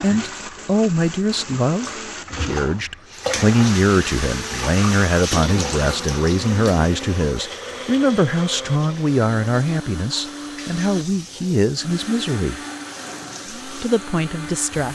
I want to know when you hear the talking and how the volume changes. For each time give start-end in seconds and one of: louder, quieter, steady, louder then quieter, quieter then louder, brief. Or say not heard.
0.0-12.6 steady
13.7-14.8 brief.